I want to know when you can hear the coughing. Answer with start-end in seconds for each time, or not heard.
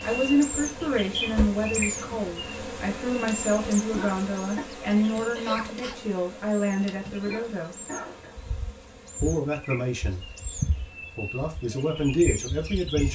3.9-4.7, 7.2-8.3.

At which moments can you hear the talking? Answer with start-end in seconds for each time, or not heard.
0.0-7.8, 9.2-10.2, 11.2-13.0.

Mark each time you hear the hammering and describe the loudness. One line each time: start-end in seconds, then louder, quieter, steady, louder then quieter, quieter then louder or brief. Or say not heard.
not heard.